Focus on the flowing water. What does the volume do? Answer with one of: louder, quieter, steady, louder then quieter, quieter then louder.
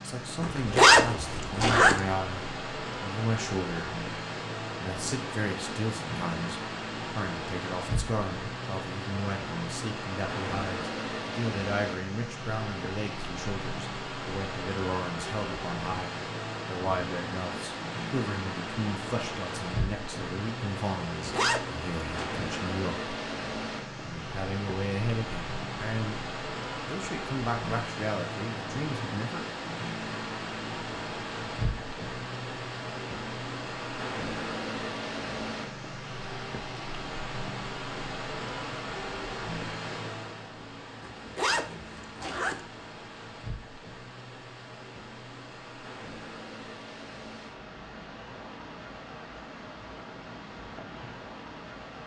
quieter.